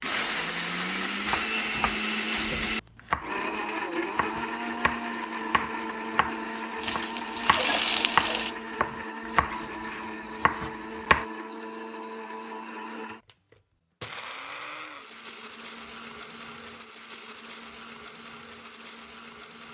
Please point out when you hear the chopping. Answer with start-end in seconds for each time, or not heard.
1.2-11.2.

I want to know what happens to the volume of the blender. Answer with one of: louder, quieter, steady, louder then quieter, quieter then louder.
quieter.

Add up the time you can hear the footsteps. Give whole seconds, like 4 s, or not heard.
not heard.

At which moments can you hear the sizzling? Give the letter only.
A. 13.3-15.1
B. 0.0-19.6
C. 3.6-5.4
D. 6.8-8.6
D.